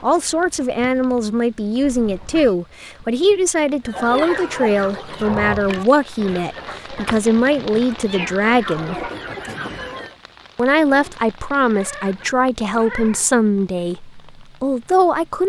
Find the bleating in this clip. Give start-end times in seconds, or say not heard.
not heard.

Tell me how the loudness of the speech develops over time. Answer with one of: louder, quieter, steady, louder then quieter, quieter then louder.
steady.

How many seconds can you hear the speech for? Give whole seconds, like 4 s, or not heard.
14 s.